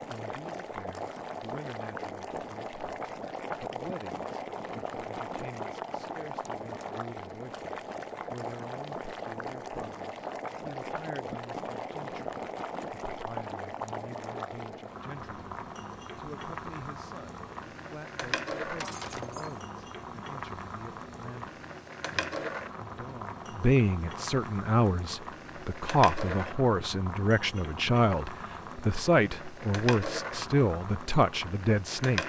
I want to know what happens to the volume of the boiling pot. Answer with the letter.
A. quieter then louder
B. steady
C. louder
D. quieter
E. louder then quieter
B.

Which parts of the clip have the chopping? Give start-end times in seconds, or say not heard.
not heard.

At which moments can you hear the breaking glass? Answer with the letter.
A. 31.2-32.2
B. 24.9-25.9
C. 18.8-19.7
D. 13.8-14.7
C.